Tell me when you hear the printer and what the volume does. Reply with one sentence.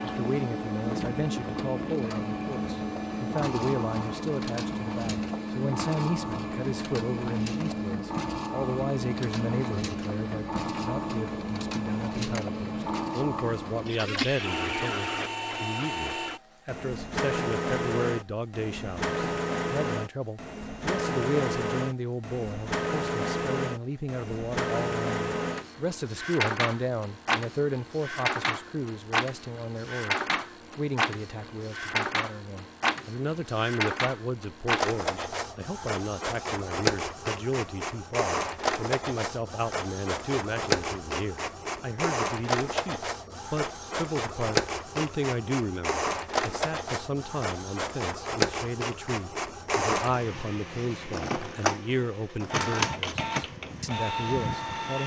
The printer can be heard from 0.0 to 55.0 s, at a steady volume.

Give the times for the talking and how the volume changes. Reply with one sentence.
You can hear the talking from 0.0 to 55.0 s, at a steady volume.